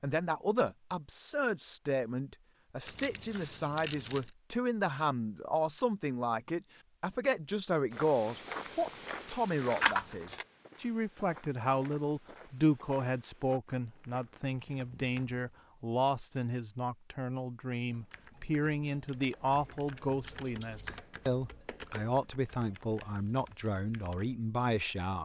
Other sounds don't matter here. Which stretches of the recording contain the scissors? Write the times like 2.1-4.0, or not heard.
2.9-4.3, 9.8-10.4, 19.6-20.9.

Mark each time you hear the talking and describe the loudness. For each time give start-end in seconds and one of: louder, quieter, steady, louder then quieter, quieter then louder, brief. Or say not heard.
0.0-25.1 steady.